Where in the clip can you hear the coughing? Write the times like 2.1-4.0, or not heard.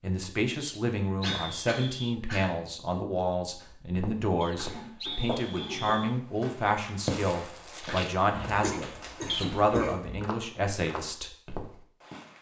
1.2-2.5, 4.5-5.9, 8.3-10.2.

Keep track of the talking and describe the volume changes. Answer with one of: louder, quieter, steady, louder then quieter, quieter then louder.
steady.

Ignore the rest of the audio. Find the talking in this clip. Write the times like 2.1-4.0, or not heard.
0.0-11.3.